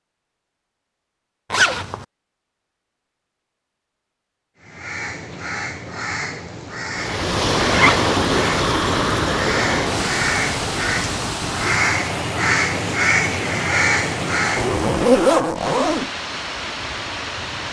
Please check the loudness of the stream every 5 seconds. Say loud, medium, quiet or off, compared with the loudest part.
off, loud, medium, medium.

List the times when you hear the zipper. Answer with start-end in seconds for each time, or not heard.
1.5-2.0, 7.7-8.1, 14.6-16.1.